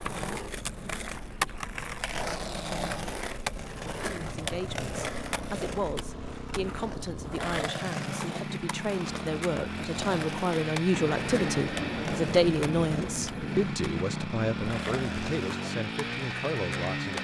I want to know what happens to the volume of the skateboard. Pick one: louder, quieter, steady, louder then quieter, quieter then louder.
quieter.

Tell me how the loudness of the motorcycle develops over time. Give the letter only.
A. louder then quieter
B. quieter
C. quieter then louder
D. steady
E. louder
E.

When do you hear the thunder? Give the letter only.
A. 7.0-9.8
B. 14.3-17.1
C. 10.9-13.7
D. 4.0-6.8
C.